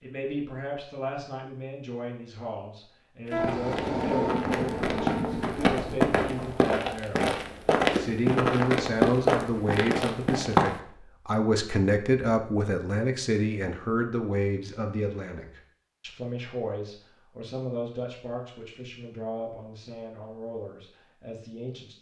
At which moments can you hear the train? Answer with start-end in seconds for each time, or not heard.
3.3-6.8.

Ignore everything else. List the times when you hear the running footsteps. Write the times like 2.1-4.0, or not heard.
3.2-10.8.